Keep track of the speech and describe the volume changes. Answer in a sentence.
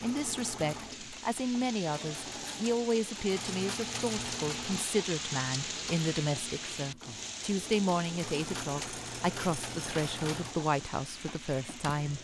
The volume of the speech stays about the same.